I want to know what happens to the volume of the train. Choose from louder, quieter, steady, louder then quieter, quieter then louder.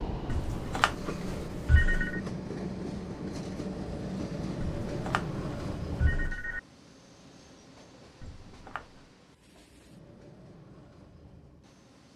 quieter.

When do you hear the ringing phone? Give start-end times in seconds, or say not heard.
0.2-2.2, 4.8-6.6, 8.2-9.1.